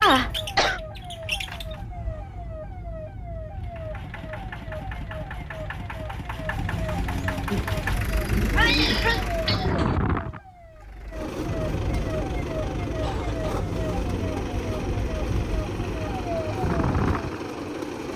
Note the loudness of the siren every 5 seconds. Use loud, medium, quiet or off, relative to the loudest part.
medium, loud, loud, loud.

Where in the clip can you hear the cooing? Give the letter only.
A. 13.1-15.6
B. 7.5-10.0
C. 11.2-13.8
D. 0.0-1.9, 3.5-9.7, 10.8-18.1
B.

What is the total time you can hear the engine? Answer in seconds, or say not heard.
15 s.